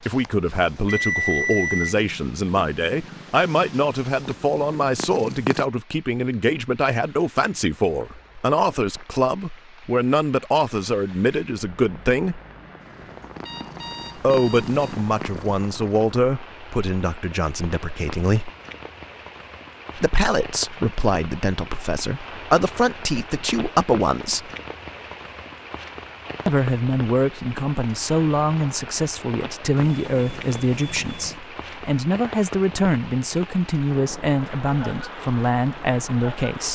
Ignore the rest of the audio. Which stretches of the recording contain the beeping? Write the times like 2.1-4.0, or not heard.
0.5-1.9, 13.2-14.8, 29.8-31.4.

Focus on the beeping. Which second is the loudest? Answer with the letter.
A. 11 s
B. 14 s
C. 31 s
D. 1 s
D.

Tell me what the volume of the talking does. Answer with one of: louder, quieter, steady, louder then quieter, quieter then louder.
steady.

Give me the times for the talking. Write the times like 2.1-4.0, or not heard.
0.1-12.4, 14.2-18.5, 19.9-24.5, 26.4-36.7.